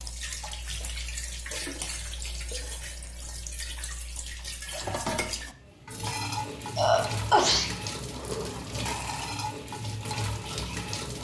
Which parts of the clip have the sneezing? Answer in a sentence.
You can hear the sneezing from 6.8 to 7.7 s.